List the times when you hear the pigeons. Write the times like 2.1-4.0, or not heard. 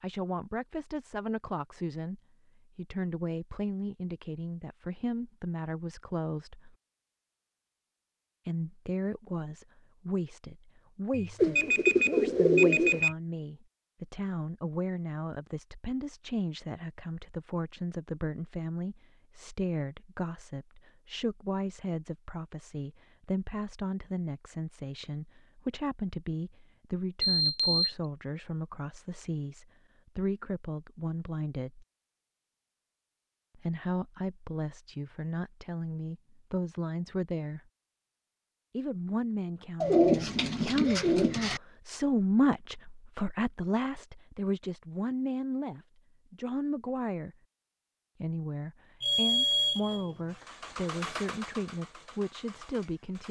11.4-13.1, 39.8-41.6.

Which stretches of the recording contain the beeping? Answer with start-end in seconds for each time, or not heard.
11.1-13.2, 27.2-27.9, 49.0-50.1.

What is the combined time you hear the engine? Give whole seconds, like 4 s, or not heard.
3 s.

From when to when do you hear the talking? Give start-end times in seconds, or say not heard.
0.0-6.8, 8.4-31.9, 33.5-37.6, 38.7-47.4, 48.2-53.2.